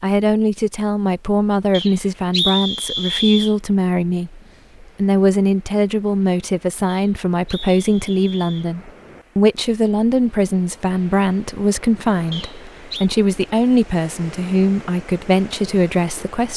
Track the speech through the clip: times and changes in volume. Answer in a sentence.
The speech can be heard from 0.0 to 16.5 s, at a steady volume.